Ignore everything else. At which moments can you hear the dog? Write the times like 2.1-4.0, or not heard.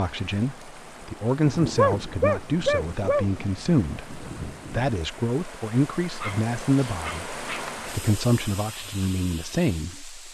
1.8-3.2, 6.2-7.7.